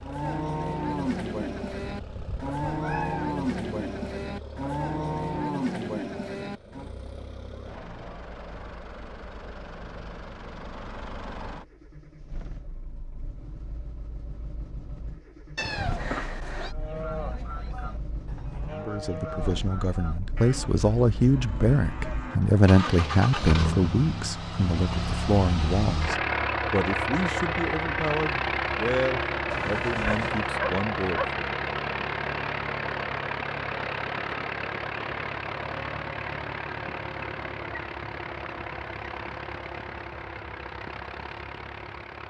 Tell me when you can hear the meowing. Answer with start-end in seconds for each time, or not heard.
1.9-3.3, 15.6-16.8, 29.5-30.5.